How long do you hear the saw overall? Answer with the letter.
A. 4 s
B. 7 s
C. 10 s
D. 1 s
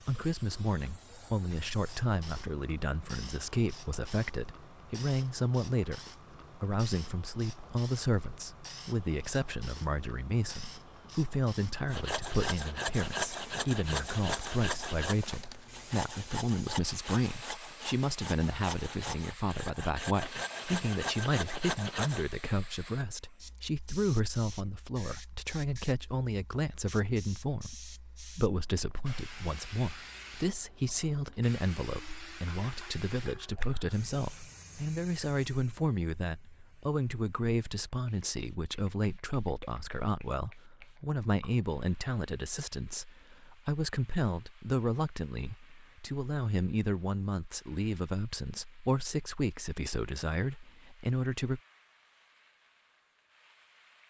C.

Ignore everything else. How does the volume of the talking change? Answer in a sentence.
The loudness of the talking stays about the same.